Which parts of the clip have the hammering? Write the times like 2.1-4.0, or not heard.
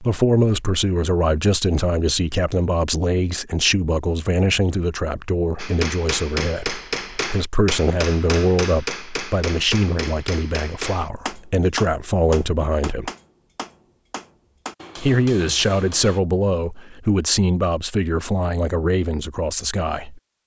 5.5-16.2.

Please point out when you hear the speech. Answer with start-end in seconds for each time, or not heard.
0.0-13.1, 15.0-20.2.